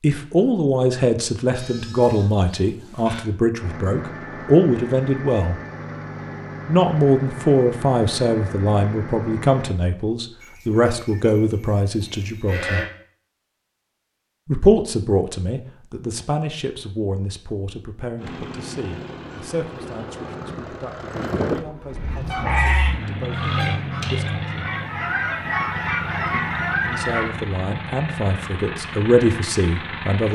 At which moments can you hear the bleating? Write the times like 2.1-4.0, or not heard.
1.6-3.2, 10.4-12.8, 22.2-22.9.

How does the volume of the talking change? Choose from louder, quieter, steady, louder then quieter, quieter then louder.
quieter then louder.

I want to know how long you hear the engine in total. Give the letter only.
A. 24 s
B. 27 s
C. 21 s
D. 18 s
D.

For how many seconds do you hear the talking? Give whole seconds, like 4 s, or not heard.
25 s.